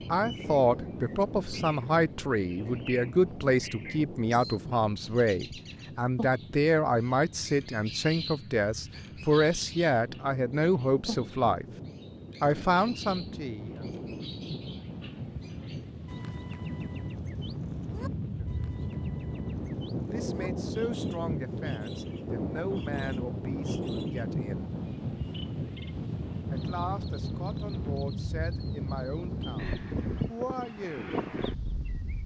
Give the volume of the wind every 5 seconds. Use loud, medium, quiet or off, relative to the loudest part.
medium, quiet, medium, loud, loud, loud, loud.